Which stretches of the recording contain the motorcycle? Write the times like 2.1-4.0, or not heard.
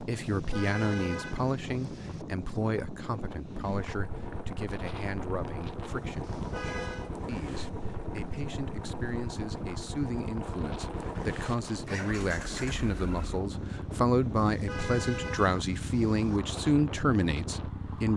3.5-18.1.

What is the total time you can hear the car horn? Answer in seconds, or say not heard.
5 s.